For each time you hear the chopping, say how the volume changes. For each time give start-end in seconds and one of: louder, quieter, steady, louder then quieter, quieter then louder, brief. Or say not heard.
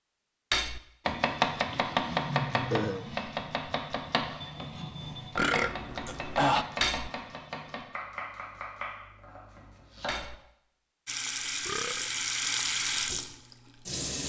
1.1-10.3 quieter.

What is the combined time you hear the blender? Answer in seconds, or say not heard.
not heard.